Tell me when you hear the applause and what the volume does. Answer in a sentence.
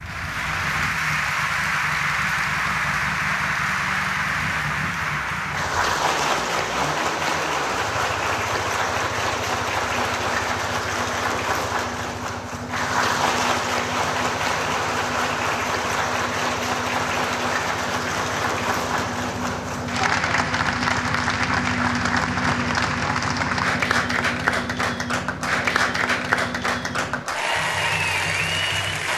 The applause can be heard from 0.0 to 29.1 s, at a steady volume.